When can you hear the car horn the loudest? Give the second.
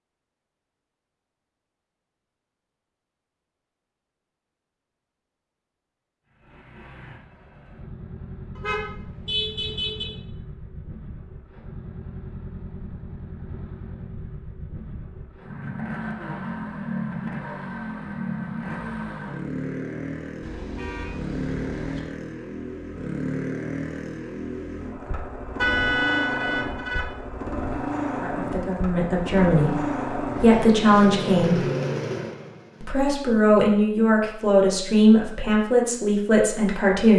26 s.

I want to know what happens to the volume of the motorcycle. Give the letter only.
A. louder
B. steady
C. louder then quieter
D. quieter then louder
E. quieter
A.